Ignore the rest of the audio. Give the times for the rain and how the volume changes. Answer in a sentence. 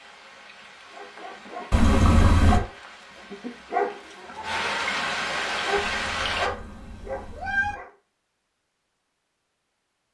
You can hear the rain from 0.0 to 6.5 s, getting louder.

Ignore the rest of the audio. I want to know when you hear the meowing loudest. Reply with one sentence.
The loudest moment of the meowing is at 2 seconds.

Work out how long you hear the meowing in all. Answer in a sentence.
The meowing can be heard for 3 seconds in total.